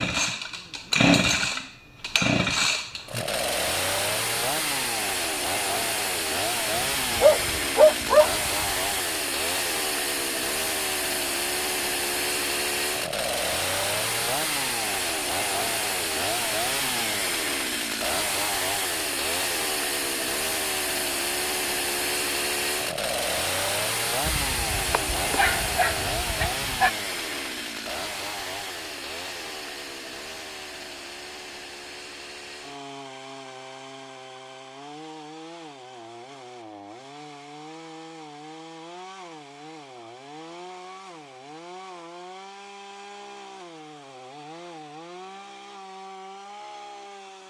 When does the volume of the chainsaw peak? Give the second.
1 s.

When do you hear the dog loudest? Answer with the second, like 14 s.
8 s.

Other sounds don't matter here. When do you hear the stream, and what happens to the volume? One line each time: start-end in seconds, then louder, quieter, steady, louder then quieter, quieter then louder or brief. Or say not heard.
not heard.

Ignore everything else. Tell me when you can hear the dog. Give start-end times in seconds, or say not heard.
6.7-8.7, 24.2-26.9.